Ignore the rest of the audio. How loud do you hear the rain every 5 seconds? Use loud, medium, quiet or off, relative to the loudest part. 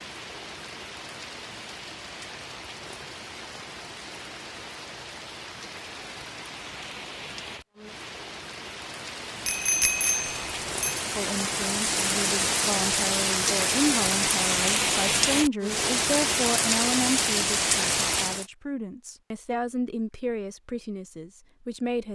quiet, quiet, loud, loud, off.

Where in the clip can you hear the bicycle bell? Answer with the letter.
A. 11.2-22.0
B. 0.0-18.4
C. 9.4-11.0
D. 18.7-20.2
C.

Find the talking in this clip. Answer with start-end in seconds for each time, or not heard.
11.2-22.0.